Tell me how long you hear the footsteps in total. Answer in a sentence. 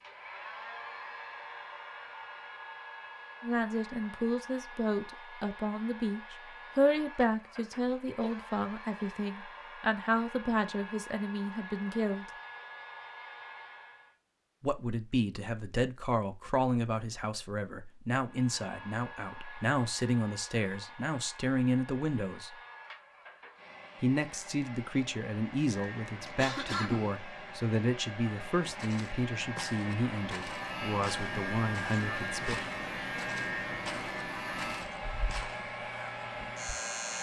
You can hear the footsteps for 7 seconds altogether.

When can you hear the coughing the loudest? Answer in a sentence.
The volume of the coughing peaks at 27 seconds.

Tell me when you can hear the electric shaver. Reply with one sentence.
The electric shaver can be heard from 25.7 to 37.1 s.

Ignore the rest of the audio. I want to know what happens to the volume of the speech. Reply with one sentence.
The volume of the speech stays about the same.